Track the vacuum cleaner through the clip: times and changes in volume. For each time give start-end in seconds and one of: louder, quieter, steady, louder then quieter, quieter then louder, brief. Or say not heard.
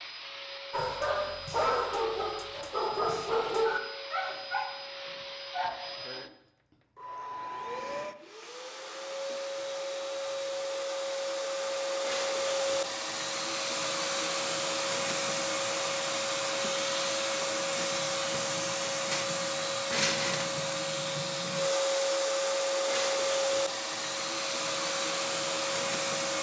0.0-26.3 louder.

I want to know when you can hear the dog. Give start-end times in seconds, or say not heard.
0.7-6.2.